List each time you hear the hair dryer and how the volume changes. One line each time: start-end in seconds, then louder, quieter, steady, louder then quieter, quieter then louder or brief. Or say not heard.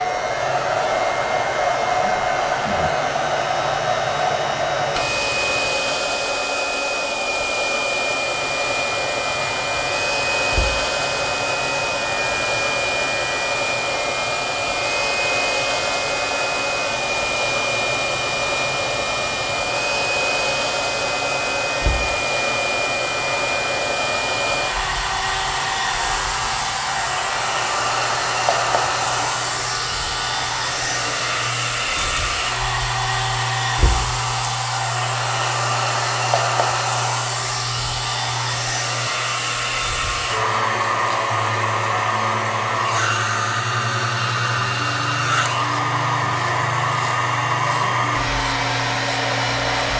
0.0-49.9 steady.